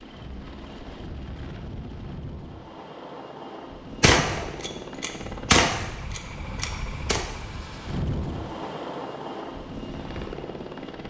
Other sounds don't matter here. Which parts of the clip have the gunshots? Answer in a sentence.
The gunshots can be heard from 4.0 to 7.2 s.